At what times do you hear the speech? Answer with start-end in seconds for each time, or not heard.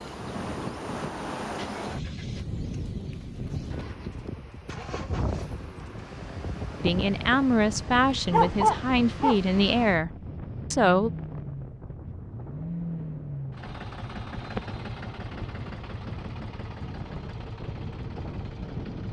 6.8-10.1, 10.7-11.1.